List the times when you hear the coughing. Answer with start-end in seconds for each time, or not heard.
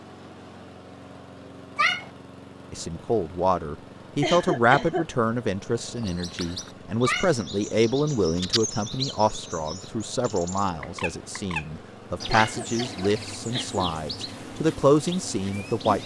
4.2-5.0, 12.3-13.9.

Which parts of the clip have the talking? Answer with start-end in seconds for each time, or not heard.
2.7-16.0.